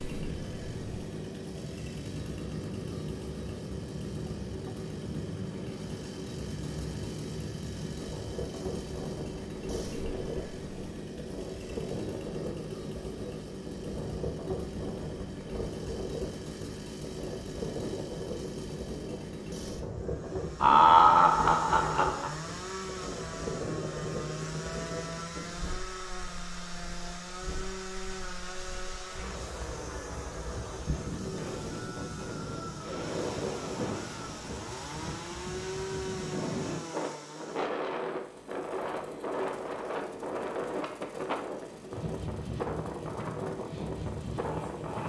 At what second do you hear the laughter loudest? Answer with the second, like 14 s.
21 s.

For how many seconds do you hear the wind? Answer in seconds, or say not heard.
45 s.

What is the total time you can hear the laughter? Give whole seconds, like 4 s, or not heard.
2 s.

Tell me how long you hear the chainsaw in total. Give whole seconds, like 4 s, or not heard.
45 s.